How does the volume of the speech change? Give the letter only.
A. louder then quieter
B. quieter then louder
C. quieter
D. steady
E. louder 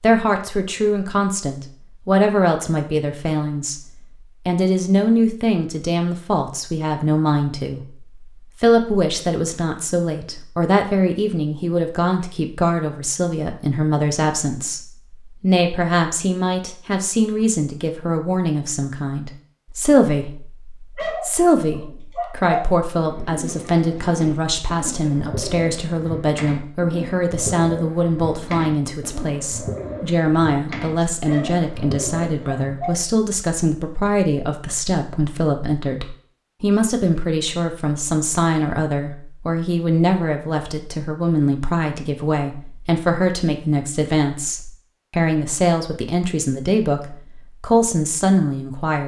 D.